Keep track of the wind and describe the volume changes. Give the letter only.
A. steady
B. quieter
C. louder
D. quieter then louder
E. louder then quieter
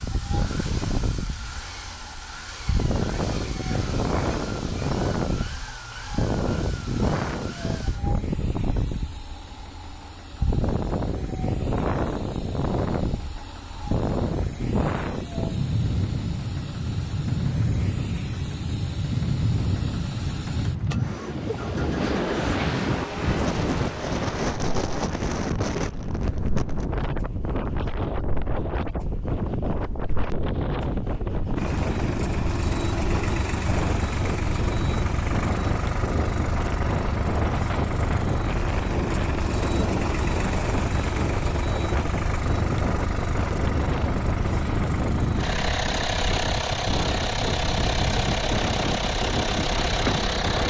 A.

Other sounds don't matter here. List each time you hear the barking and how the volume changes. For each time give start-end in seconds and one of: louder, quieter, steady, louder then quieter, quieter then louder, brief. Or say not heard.
not heard.